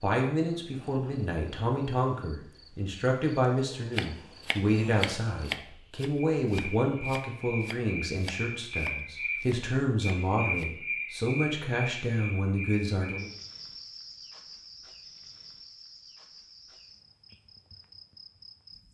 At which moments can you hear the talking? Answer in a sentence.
The talking can be heard from 0.0 to 13.3 s.